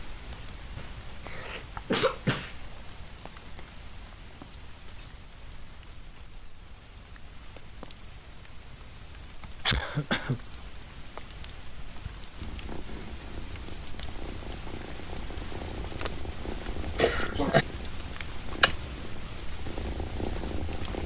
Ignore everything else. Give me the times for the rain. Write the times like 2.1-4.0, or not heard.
0.0-21.0.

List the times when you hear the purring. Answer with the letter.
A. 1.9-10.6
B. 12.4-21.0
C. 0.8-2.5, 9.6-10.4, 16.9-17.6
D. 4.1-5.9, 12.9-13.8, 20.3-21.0
B.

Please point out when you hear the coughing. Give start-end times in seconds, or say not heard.
0.8-2.5, 9.6-10.4, 16.9-17.6.